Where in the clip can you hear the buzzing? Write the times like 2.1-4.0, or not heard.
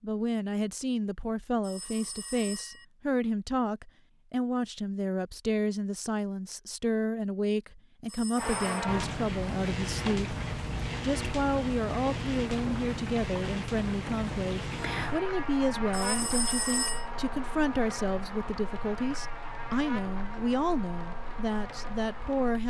8.3-22.6.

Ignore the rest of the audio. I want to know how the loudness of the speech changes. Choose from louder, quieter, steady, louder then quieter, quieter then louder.
steady.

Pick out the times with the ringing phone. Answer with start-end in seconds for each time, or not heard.
1.6-2.9, 8.1-8.8, 15.9-17.1.